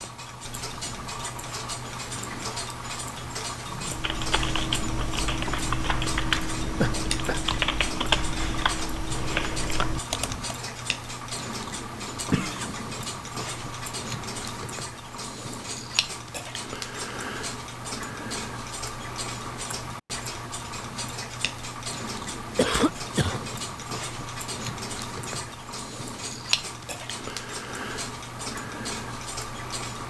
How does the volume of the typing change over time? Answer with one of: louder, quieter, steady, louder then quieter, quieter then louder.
steady.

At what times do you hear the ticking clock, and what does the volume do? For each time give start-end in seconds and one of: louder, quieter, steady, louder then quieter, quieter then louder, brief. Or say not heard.
0.0-30.0 steady.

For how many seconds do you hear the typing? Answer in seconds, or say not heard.
7 s.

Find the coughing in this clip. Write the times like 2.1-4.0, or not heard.
6.8-7.4, 12.3-12.8, 22.6-23.4.